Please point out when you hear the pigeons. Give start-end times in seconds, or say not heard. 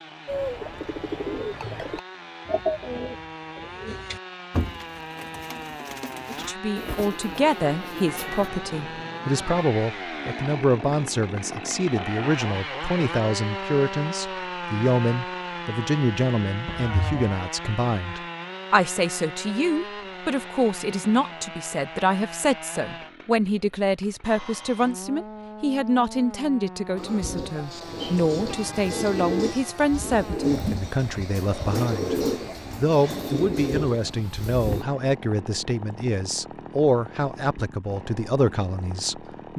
0.2-8.5, 26.9-34.9.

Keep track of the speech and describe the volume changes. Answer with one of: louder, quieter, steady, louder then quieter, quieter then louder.
steady.